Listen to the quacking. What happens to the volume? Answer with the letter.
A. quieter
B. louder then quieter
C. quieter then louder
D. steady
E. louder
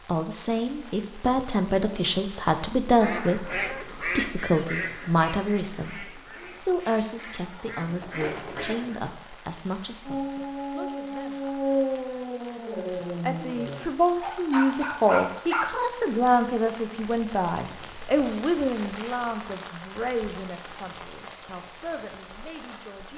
C.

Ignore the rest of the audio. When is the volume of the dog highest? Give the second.
12 s.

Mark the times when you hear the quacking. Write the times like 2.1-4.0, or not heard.
3.0-9.0.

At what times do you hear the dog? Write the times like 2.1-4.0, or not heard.
10.1-15.7.